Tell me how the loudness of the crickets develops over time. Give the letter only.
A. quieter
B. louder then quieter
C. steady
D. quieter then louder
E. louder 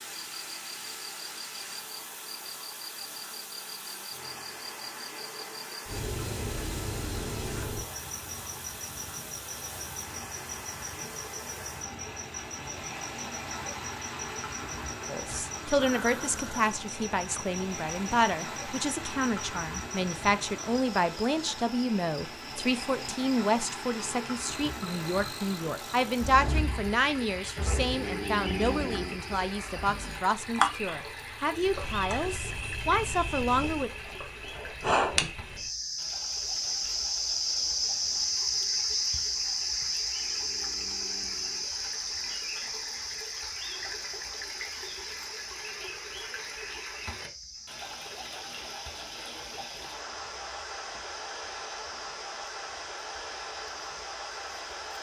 B.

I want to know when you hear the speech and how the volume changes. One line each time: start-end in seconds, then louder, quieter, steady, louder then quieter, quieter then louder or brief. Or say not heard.
15.1-33.9 steady.